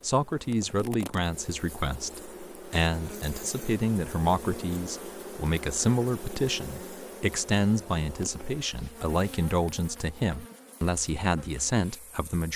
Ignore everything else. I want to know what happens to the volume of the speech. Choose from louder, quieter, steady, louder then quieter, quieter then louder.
steady.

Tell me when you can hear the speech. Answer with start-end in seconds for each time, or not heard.
0.0-12.5.